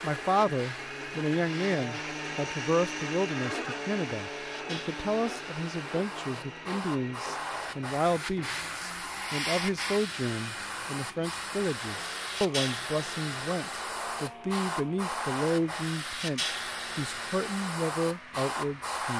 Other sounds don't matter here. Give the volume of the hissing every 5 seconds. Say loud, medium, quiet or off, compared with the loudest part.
medium, loud, loud, loud.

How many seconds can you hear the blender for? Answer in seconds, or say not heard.
19 s.